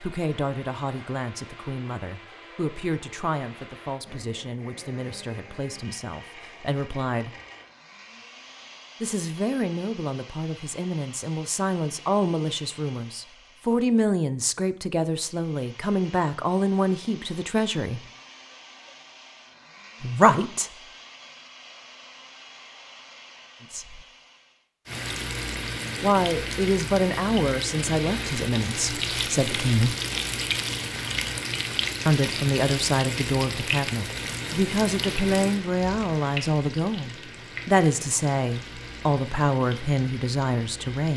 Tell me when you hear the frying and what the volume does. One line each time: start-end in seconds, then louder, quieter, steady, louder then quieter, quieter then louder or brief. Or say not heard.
24.9-41.1 quieter.